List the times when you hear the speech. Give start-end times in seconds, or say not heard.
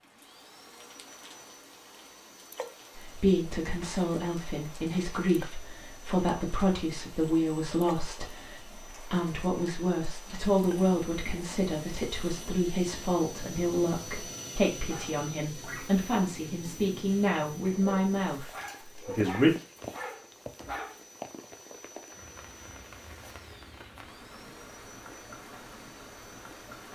3.0-19.5.